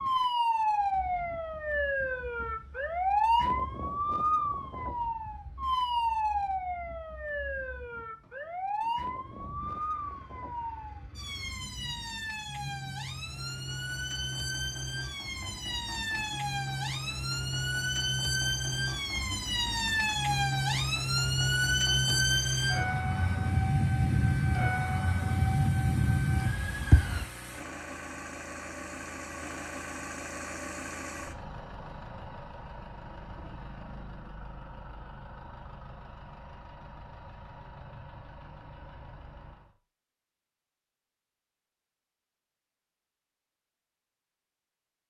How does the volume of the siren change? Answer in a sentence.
The volume of the siren goes down, then up.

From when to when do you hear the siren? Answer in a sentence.
You can hear the siren from 0.0 to 27.3 s.